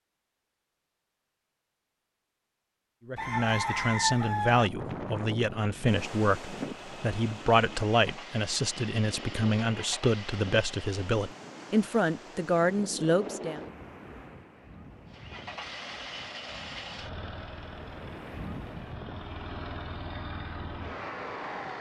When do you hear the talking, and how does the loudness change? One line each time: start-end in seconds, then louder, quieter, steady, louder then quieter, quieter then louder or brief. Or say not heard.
3.0-13.6 steady.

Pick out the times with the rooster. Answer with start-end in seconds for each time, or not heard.
3.1-4.7.